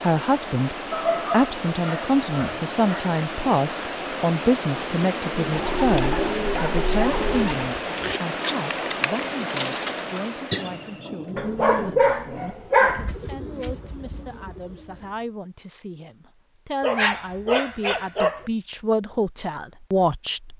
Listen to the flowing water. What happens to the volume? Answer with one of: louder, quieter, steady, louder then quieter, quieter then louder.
steady.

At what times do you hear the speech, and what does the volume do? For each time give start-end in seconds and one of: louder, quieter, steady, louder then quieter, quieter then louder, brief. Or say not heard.
0.0-20.5 quieter then louder.